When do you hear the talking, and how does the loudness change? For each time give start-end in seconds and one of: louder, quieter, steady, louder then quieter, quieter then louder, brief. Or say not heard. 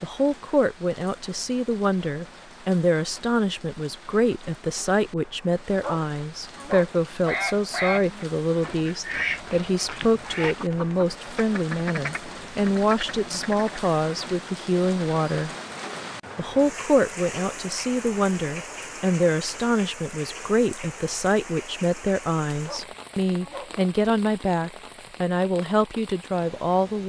0.0-15.5 steady
16.4-27.0 steady.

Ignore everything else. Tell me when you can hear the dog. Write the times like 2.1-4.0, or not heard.
5.7-7.0, 22.5-23.8.